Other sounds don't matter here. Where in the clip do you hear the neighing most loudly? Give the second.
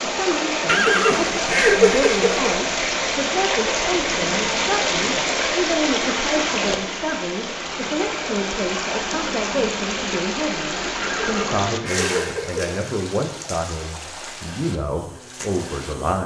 2 s.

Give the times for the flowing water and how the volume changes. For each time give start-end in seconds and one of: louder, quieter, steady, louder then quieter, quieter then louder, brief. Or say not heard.
0.0-15.9 quieter.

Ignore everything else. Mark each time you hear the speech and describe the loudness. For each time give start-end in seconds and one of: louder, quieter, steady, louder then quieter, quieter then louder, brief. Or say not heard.
0.0-16.2 steady.